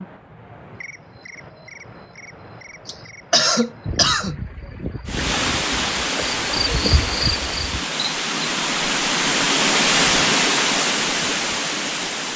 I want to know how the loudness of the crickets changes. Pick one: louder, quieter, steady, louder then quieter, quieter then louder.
louder.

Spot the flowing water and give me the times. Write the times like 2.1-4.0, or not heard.
5.0-12.3.